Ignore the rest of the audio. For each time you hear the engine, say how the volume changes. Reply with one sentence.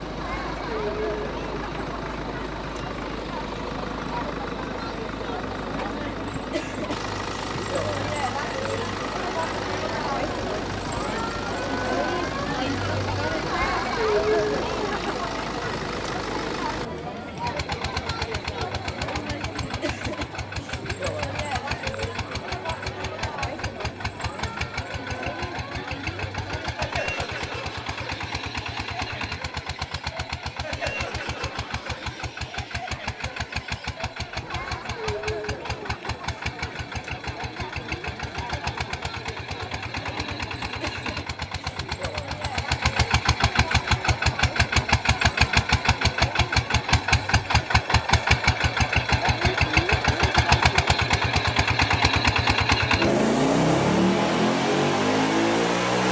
You can hear the engine from 0.0 to 56.0 s, getting louder.